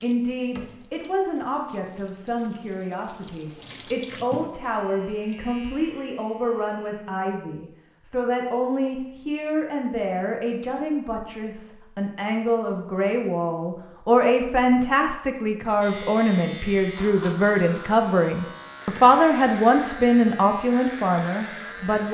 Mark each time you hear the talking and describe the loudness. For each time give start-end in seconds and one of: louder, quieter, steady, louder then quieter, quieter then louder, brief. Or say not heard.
0.0-22.1 louder.